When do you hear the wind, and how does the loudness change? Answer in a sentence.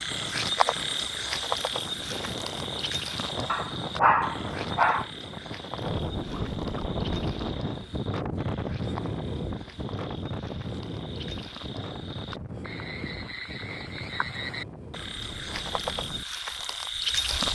The wind can be heard from 0.0 to 17.5 s, getting louder then quieter.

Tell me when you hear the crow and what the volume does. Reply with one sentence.
You can't hear the crow here.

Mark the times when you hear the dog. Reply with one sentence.
You can hear the dog from 3.5 to 5.0 s.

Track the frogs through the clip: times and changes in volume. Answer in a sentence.
The frogs can be heard from 0.0 to 17.5 s, getting quieter then louder.